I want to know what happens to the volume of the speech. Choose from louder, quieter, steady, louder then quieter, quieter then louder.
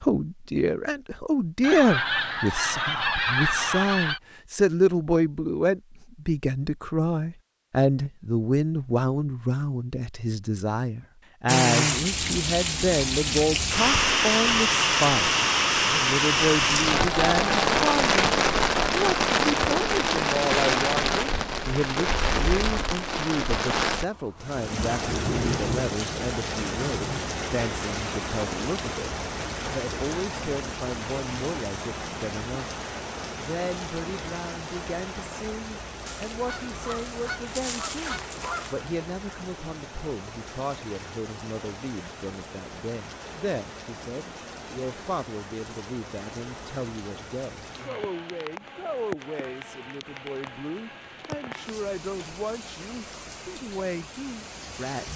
quieter.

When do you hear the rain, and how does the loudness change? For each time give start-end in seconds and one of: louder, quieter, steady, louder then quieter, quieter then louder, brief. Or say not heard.
11.4-55.1 quieter.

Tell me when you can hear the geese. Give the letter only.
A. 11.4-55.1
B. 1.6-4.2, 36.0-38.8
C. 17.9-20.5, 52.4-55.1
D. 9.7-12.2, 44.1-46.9
B.